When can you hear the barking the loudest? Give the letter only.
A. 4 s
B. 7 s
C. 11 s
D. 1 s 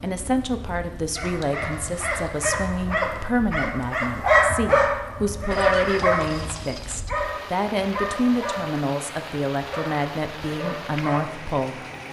A.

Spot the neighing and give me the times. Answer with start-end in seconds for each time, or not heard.
5.5-7.0.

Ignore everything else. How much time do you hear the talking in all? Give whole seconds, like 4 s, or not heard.
12 s.